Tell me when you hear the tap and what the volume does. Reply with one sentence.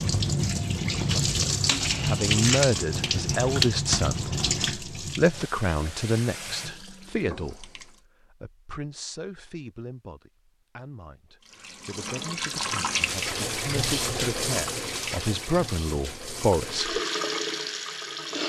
The tap can be heard from 0.0 to 8.0 s, getting quieter; and from 11.4 to 18.4 s, getting quieter then louder.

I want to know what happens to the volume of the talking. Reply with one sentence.
The volume of the talking goes down, then up.